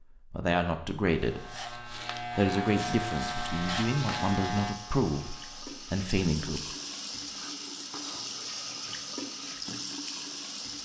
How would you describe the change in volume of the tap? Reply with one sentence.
The volume of the tap goes up.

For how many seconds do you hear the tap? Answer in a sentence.
You can hear the tap for 7 seconds altogether.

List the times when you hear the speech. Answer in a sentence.
The speech can be heard from 0.3 to 6.6 s.